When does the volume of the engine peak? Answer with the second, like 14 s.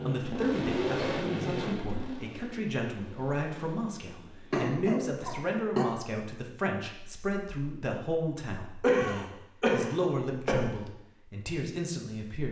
1 s.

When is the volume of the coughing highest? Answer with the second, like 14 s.
9 s.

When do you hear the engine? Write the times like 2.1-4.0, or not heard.
0.0-4.7.